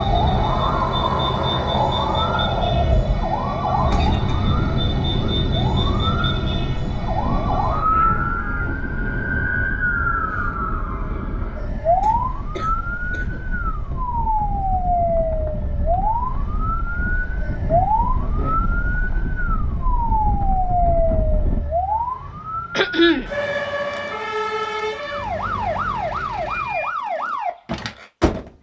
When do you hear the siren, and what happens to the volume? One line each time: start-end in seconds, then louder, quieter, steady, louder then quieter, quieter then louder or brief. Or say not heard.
0.0-28.5 steady.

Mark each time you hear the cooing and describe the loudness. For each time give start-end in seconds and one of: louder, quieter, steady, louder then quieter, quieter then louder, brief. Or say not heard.
not heard.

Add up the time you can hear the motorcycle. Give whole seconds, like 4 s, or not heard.
not heard.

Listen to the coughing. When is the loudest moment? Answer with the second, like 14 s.
23 s.